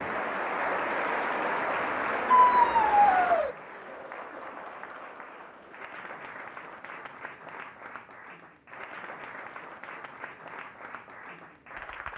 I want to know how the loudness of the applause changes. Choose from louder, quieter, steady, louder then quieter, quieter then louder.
quieter.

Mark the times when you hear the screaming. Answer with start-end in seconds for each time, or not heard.
2.3-3.5.